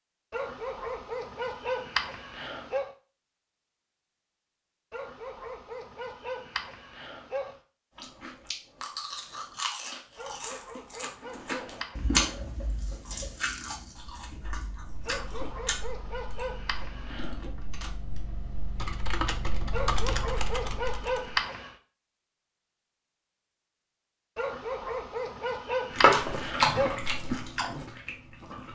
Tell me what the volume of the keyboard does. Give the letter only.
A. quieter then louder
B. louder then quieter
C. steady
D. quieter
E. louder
E.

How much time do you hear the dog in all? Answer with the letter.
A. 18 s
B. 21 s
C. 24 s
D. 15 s
D.